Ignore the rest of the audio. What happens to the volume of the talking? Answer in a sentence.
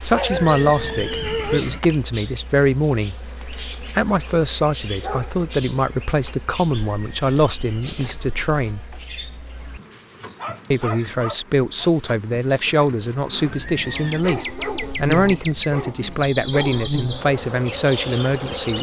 The volume of the talking stays about the same.